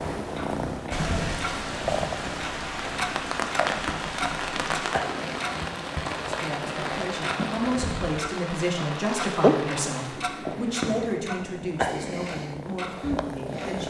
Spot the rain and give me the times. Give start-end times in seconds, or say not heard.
0.0-11.2.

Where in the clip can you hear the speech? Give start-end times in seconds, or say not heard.
6.2-13.8.